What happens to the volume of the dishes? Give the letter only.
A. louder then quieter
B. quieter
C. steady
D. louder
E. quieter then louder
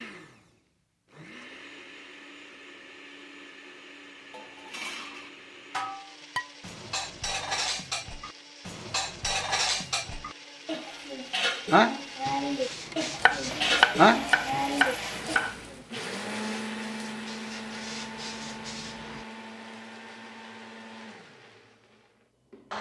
D.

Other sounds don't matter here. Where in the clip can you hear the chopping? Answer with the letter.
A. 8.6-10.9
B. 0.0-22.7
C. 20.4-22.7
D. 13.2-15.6
D.